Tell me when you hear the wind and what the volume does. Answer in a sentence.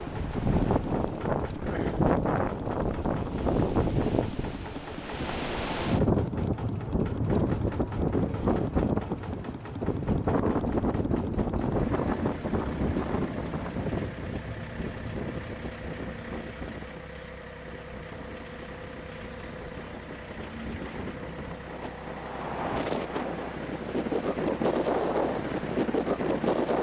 The wind can be heard from 0.0 to 26.7 s, getting quieter then louder.